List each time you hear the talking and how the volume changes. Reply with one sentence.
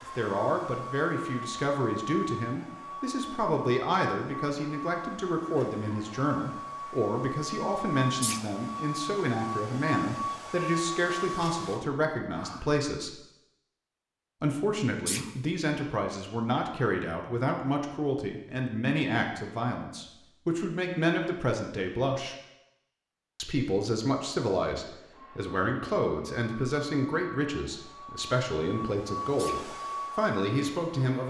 The talking can be heard from 0.0 to 13.1 s, at a steady volume; from 14.4 to 22.4 s, at a steady volume; and from 23.4 to 31.2 s, at a steady volume.